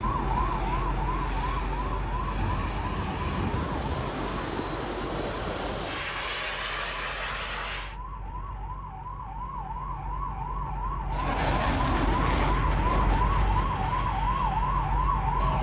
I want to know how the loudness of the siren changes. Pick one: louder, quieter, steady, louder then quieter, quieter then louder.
quieter then louder.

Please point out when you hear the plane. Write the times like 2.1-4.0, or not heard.
0.0-8.0, 11.1-15.5.